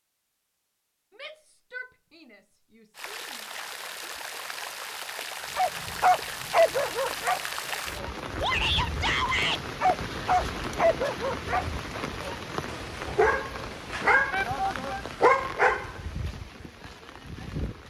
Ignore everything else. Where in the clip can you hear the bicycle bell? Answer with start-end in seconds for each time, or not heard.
not heard.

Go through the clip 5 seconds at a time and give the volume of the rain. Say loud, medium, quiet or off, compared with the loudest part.
loud, loud, loud, medium.